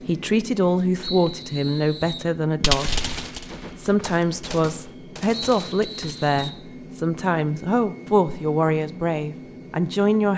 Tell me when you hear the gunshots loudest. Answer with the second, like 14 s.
3 s.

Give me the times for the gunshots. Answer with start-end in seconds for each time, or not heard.
2.6-6.5.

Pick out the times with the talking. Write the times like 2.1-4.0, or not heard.
0.1-3.0, 3.8-10.3.